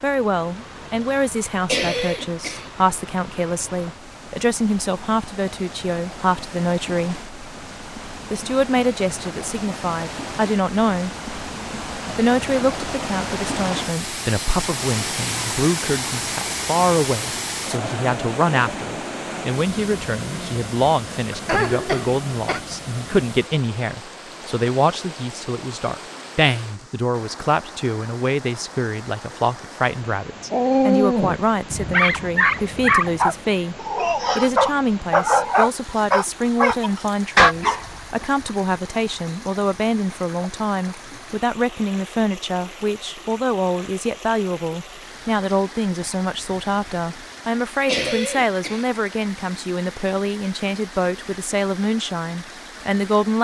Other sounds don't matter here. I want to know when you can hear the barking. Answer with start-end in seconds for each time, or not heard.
30.5-38.2.